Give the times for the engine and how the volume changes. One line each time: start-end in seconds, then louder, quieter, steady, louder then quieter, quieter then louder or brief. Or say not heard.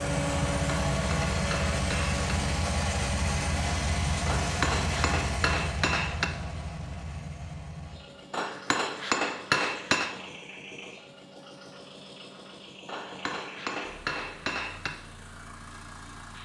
0.0-16.3 quieter.